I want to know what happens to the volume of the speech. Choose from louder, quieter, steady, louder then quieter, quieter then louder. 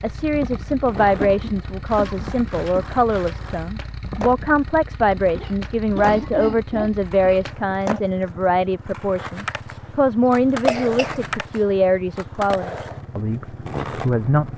steady.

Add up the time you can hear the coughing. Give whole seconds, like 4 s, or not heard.
5 s.